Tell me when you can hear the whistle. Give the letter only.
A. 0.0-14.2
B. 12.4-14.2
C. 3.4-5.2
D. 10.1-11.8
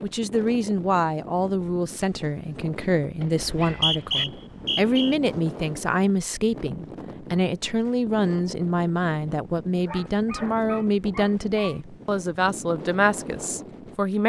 C.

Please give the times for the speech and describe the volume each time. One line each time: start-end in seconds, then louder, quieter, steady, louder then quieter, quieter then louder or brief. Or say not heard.
0.0-14.2 steady.